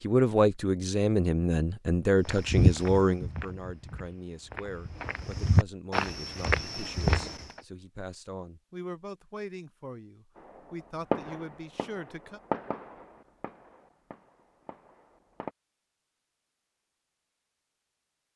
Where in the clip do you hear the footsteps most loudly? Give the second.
3 s.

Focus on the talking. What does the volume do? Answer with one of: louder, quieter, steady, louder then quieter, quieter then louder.
quieter.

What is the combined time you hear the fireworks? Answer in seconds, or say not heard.
5 s.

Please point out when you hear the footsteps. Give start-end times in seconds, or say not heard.
2.2-7.6.